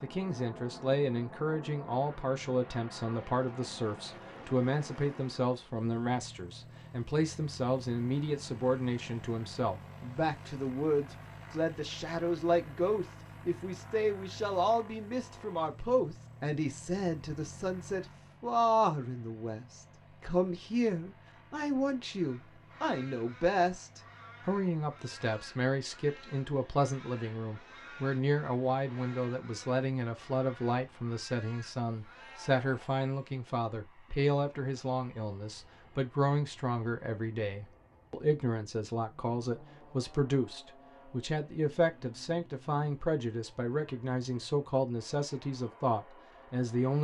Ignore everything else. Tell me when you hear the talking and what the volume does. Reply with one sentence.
The talking can be heard from 0.0 to 46.9 s, at a steady volume.